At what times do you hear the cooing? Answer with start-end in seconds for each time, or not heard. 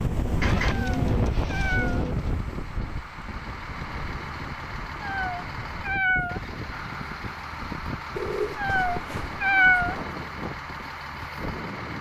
0.4-2.3, 8.2-9.9.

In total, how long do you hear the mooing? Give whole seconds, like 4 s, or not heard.
not heard.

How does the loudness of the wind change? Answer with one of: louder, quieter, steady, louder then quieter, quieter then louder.
quieter.